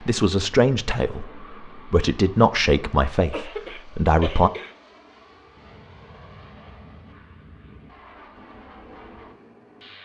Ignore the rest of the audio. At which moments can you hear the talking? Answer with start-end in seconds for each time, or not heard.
0.0-4.5.